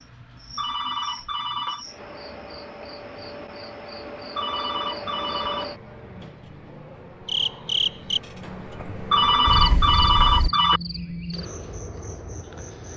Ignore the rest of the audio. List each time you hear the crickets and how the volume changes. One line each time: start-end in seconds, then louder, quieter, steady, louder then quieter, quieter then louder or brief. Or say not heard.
0.0-12.9 louder then quieter.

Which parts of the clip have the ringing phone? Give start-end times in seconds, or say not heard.
0.6-1.9, 4.3-5.7, 9.1-10.8.